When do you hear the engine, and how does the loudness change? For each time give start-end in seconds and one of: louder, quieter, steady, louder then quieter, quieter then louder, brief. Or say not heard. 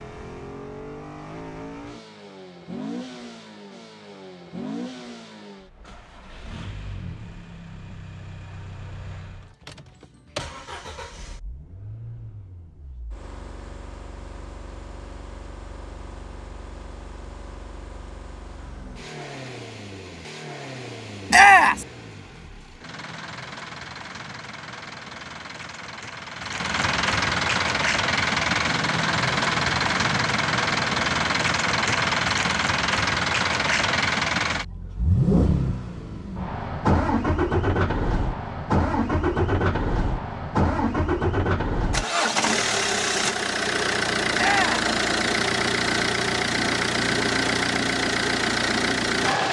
0.0-49.4 louder.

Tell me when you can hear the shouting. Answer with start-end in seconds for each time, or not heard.
21.3-21.9, 44.4-44.9.